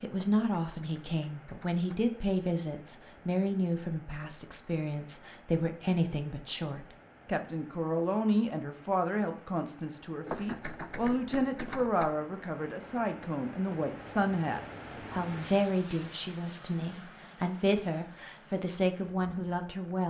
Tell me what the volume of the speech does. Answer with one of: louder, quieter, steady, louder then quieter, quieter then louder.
steady.